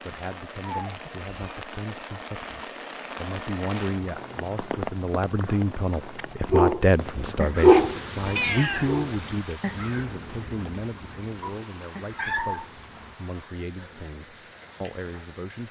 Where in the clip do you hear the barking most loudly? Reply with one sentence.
The volume of the barking peaks at 8 seconds.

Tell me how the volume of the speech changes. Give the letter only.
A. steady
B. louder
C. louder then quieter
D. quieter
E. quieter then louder
C.